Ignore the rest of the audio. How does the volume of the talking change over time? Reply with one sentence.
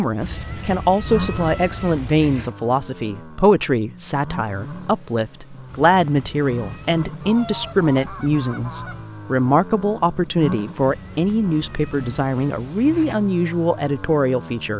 The loudness of the talking stays about the same.